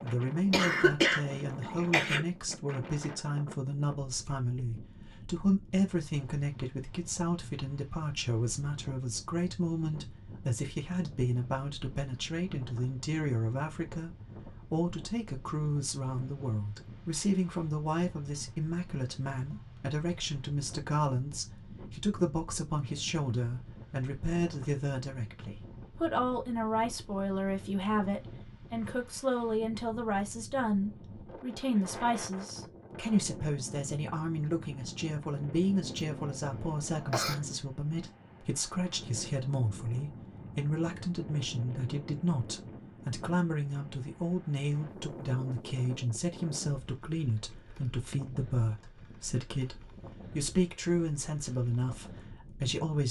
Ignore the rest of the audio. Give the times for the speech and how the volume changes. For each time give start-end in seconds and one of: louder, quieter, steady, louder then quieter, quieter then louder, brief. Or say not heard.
0.0-53.0 steady.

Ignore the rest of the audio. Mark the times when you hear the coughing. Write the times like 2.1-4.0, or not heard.
0.5-2.2, 35.8-37.4.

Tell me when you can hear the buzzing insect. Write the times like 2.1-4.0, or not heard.
not heard.